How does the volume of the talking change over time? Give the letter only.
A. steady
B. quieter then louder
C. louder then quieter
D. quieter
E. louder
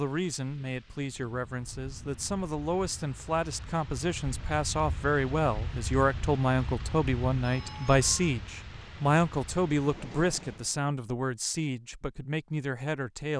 C.